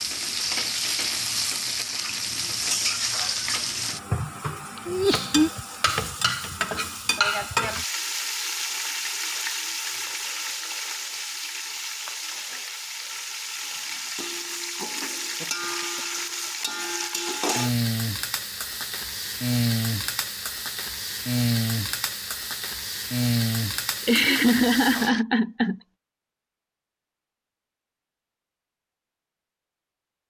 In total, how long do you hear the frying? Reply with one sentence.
The frying can be heard for 25 seconds in total.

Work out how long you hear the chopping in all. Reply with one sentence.
You can't hear the chopping here.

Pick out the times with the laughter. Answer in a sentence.
The laughter can be heard from 4.8 to 5.5 s, from 15.2 to 16.2 s and from 24.1 to 25.8 s.